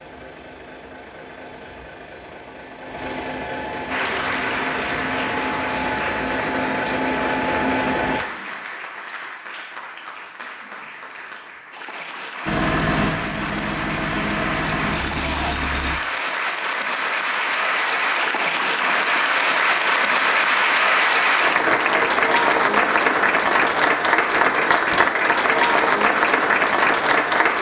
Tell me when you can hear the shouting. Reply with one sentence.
The shouting can be heard from 15.2 to 15.6 s.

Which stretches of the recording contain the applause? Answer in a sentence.
You can hear the applause from 3.9 to 27.5 s.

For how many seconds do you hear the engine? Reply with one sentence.
You can hear the engine for 12 seconds altogether.